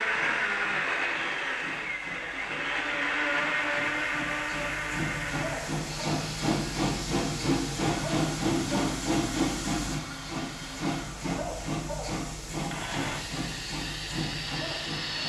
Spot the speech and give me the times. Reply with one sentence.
The speech can't be heard in this clip.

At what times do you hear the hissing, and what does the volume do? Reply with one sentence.
You can hear the hissing from 0.0 to 15.2 s, getting louder then quieter.